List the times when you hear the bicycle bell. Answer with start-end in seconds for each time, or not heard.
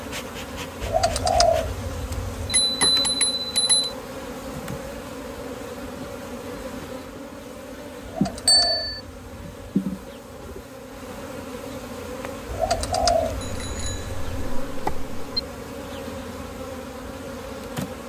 2.5-3.9, 8.4-9.0, 13.4-15.4.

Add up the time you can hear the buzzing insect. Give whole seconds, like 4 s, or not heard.
18 s.